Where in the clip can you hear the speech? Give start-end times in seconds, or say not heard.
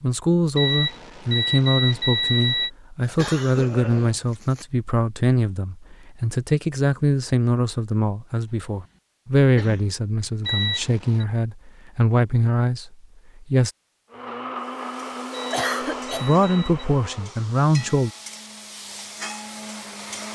0.0-13.7, 16.2-18.1.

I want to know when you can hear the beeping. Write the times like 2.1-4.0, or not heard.
0.6-2.7, 10.4-11.2, 15.3-16.9.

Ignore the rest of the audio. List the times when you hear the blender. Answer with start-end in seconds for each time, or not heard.
14.1-20.3.